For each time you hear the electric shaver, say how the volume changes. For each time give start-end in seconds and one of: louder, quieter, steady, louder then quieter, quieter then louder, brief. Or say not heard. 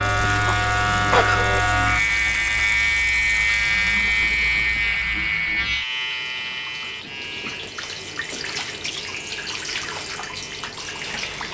0.0-11.4 quieter.